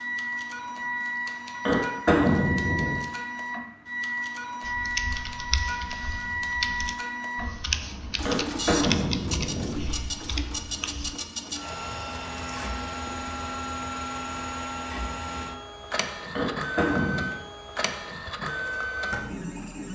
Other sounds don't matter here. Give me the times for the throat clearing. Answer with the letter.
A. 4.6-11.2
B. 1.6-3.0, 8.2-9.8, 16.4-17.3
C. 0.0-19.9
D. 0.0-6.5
B.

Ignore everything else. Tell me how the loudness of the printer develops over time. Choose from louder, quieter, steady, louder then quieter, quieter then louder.
steady.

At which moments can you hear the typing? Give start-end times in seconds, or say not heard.
4.6-11.2.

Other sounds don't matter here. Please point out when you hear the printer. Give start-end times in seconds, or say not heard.
0.0-19.9.